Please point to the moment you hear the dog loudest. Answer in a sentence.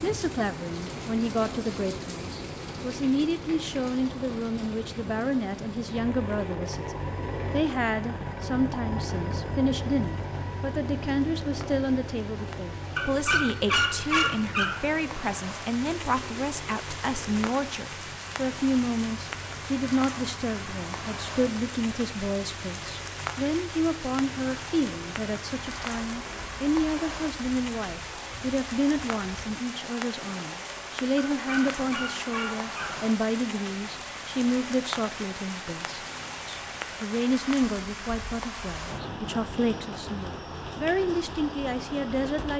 The volume of the dog peaks at 14 seconds.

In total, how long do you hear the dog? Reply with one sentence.
The dog can be heard for 4 seconds in total.